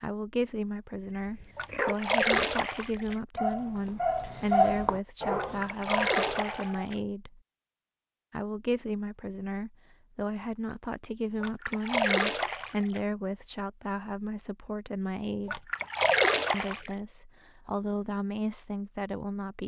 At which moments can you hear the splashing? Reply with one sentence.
You can hear the splashing from 1.5 to 3.1 s, from 5.3 to 7.0 s, from 11.3 to 13.0 s and from 15.4 to 16.9 s.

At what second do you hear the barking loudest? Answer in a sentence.
The loudest moment of the barking is at 5 seconds.